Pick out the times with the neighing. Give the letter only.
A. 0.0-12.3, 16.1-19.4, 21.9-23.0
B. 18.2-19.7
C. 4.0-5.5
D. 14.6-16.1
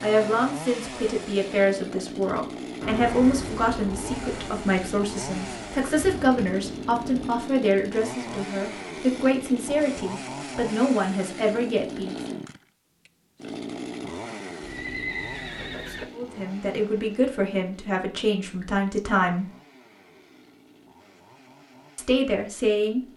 D.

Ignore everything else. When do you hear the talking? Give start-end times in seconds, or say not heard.
0.0-12.3, 16.1-19.4, 21.9-23.0.